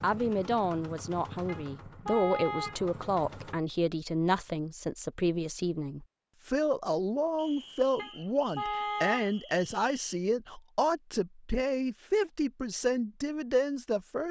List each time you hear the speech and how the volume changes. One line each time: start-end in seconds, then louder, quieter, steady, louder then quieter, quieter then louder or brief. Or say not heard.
0.0-14.2 steady.